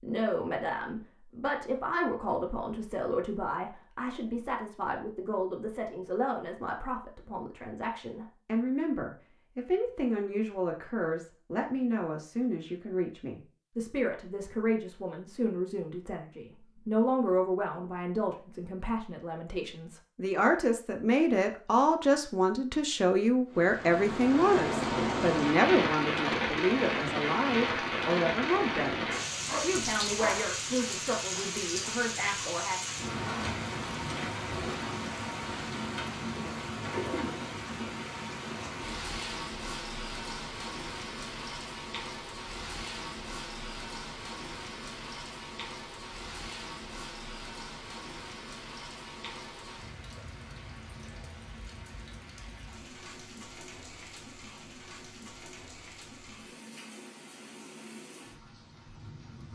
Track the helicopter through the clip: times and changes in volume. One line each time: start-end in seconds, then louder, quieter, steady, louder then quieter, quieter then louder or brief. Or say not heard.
not heard.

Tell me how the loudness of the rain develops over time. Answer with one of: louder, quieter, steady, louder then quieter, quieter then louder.
quieter.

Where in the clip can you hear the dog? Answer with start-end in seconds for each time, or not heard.
29.4-30.6.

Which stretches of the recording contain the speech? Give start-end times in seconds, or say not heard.
0.0-32.8.